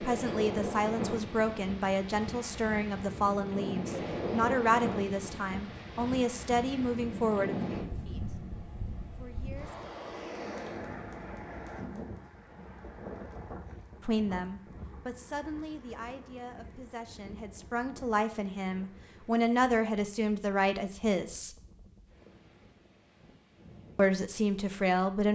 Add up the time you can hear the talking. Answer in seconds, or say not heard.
18 s.